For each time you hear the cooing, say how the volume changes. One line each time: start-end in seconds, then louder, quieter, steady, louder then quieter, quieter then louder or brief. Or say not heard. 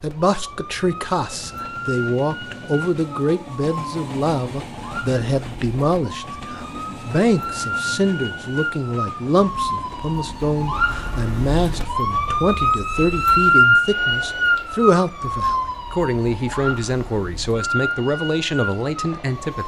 not heard.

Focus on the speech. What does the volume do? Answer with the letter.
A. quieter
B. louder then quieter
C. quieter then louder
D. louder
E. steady
E.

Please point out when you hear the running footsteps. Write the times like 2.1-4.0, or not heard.
not heard.